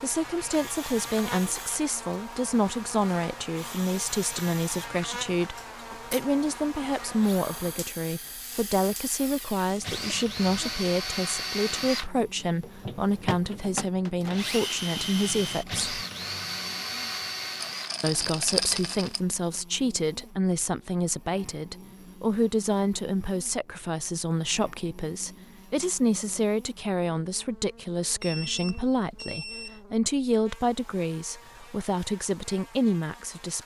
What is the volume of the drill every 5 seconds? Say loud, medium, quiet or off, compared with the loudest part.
medium, medium, loud, loud, off, off, off.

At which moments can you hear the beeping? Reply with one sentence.
The beeping can be heard from 28.2 to 29.8 s.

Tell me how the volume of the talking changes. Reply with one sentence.
The volume of the talking stays about the same.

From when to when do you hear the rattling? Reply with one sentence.
The rattling can be heard from 17.6 to 19.2 s.